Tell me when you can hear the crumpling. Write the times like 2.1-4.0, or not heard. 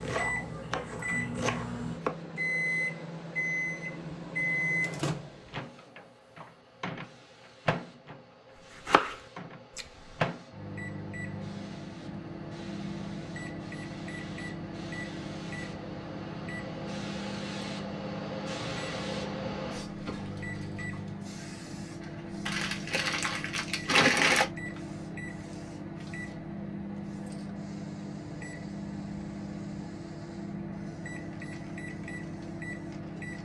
22.4-24.4.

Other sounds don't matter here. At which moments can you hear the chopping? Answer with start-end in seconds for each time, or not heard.
0.0-2.2, 8.8-10.2.